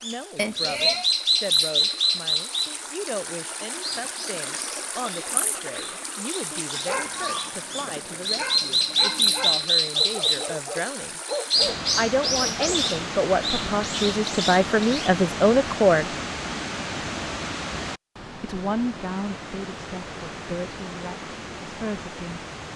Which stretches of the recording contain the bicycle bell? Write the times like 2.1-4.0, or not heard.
0.3-1.1.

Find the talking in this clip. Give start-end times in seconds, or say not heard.
0.0-11.2, 11.9-16.1, 18.4-22.7.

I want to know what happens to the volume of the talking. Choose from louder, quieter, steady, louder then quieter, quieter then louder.
louder then quieter.